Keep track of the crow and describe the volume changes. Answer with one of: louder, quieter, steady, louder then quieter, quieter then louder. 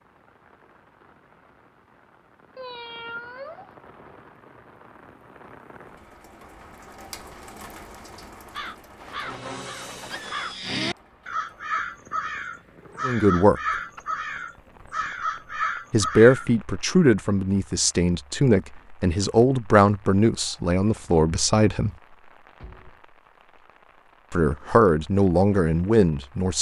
louder.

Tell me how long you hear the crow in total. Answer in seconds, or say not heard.
8 s.